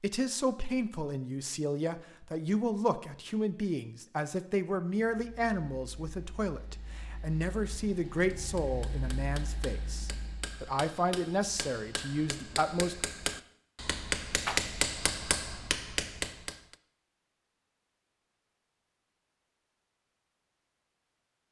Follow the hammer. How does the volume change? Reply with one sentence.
The loudness of the hammer goes up.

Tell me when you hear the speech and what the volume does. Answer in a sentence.
The speech can be heard from 0.0 to 12.9 s, at a steady volume.